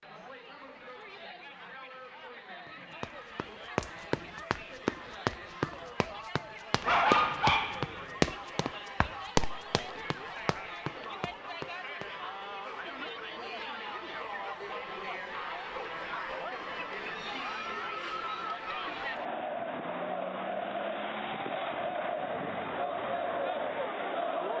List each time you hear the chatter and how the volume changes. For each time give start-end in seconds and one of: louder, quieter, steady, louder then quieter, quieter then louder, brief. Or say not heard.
0.0-24.5 louder.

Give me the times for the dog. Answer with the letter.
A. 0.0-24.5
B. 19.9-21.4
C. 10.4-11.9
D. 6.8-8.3
D.